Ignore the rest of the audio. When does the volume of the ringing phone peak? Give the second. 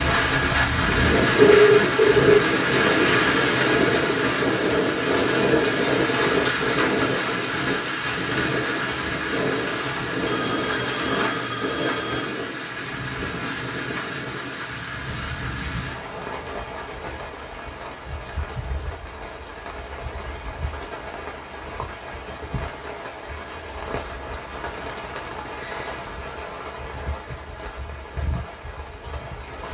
2 s.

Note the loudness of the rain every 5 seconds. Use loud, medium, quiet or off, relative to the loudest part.
loud, loud, medium, quiet, quiet, quiet.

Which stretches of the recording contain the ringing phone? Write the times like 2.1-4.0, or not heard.
1.4-2.4, 10.2-12.2, 24.1-25.9.